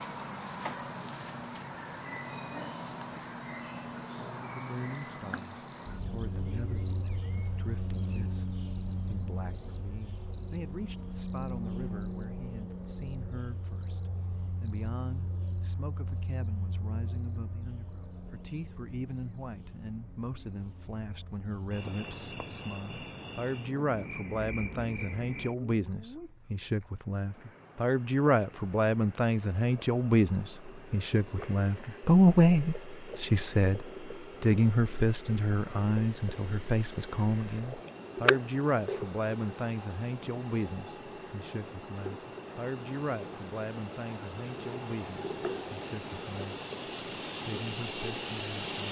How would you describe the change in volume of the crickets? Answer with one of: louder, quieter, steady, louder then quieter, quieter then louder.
quieter then louder.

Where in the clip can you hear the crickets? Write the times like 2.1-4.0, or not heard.
0.0-48.8.